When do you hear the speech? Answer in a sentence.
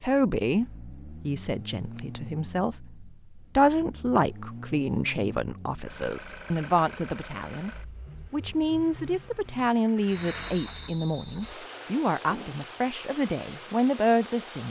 You can hear the speech from 0.0 to 7.7 s and from 8.3 to 14.6 s.